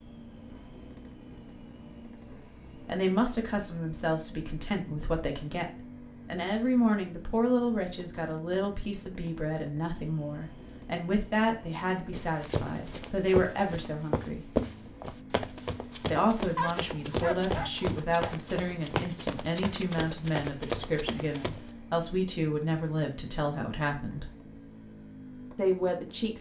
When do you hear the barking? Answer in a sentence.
The barking can be heard from 16.6 to 18.4 s.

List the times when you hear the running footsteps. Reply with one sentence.
The running footsteps can be heard from 12.1 to 21.7 s.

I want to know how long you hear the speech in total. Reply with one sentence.
The speech can be heard for 21 seconds in total.